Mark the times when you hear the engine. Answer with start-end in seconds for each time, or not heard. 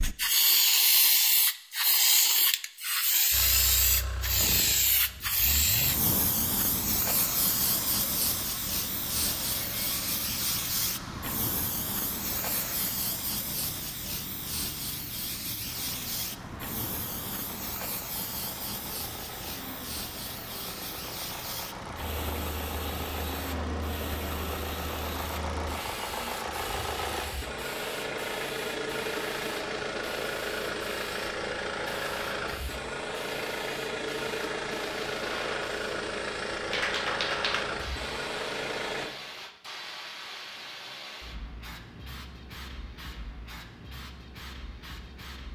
3.3-39.1.